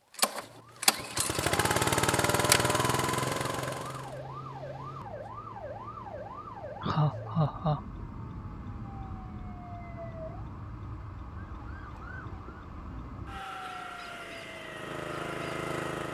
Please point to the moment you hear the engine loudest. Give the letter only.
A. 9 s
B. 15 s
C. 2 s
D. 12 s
C.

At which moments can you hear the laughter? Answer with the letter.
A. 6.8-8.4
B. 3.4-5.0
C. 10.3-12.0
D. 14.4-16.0
A.